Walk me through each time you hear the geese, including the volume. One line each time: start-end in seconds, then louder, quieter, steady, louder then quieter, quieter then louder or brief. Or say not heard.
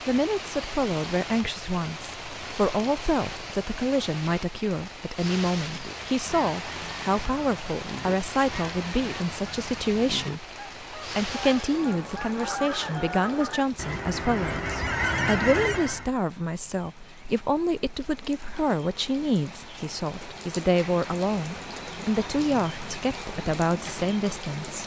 5.6-16.1 louder.